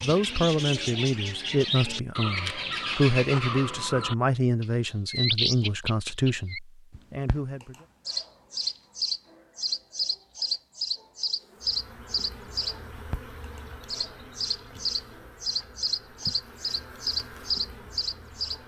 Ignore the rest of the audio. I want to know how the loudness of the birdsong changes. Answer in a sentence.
The loudness of the birdsong stays about the same.